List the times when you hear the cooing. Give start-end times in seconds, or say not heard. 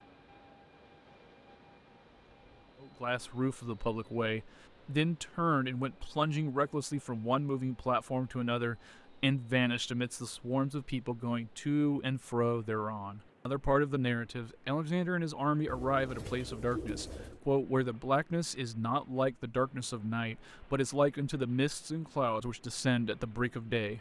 15.7-17.4.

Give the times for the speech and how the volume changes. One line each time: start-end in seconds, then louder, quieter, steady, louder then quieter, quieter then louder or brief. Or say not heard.
2.8-23.9 steady.